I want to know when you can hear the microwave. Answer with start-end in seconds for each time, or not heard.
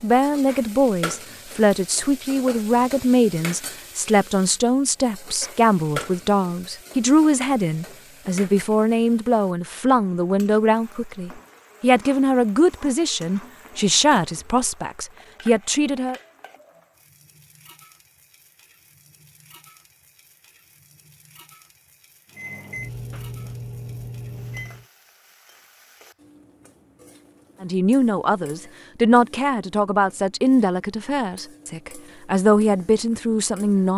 22.3-24.9.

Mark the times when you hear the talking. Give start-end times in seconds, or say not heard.
0.0-16.2, 27.6-33.9.